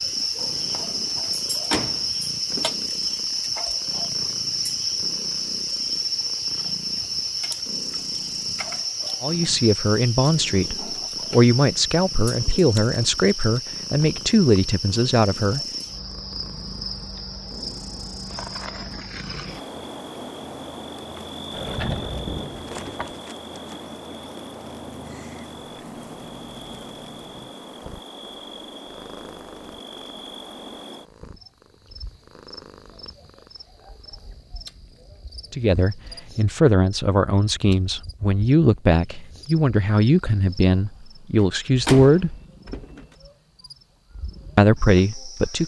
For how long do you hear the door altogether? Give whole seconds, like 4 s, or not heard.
5 s.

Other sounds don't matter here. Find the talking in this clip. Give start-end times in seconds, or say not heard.
9.2-15.6, 35.5-42.4, 44.5-45.6.